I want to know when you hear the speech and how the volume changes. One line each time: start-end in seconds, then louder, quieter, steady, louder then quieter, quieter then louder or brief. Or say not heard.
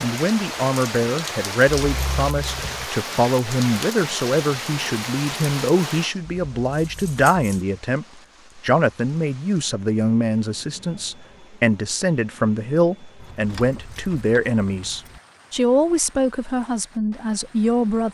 0.0-18.0 steady.